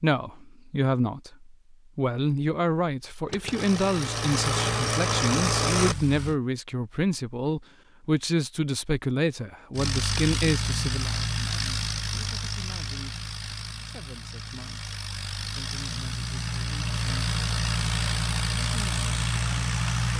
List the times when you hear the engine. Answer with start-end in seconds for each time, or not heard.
3.2-6.3, 9.8-20.1.